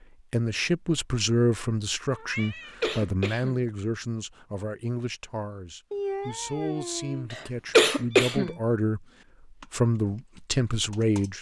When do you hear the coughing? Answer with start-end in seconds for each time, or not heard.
2.4-3.6, 7.3-8.6.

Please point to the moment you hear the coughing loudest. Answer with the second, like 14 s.
8 s.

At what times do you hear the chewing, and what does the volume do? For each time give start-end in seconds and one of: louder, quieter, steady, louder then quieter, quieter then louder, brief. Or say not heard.
not heard.